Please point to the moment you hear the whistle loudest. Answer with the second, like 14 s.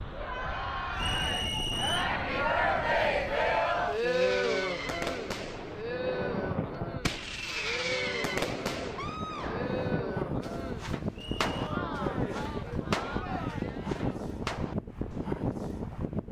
2 s.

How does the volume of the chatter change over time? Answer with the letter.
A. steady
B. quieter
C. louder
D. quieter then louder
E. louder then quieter
B.